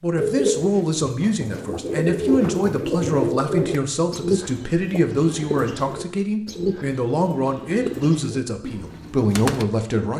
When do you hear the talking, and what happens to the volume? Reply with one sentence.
The talking can be heard from 0.0 to 10.1 s, at a steady volume.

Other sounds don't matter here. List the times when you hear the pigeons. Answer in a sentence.
You can hear the pigeons from 0.1 to 9.7 s.